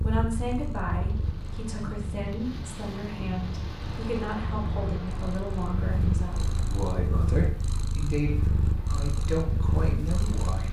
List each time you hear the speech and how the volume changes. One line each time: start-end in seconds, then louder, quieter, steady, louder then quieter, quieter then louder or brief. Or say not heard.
0.0-10.6 steady.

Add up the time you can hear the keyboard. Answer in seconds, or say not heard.
not heard.